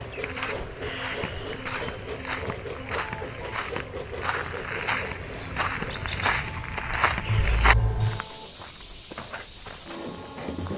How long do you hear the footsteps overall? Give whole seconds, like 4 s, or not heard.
11 s.